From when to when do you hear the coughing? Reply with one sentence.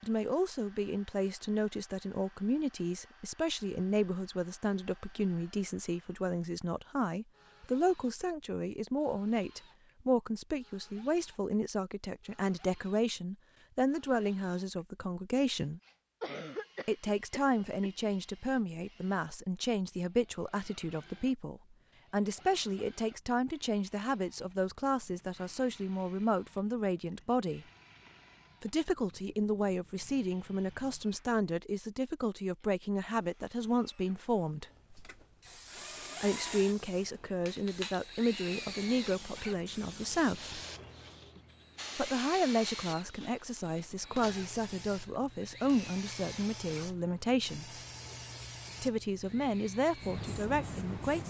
The coughing can be heard from 16.2 to 18.1 s.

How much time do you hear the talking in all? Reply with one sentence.
The talking can be heard for 45 seconds in total.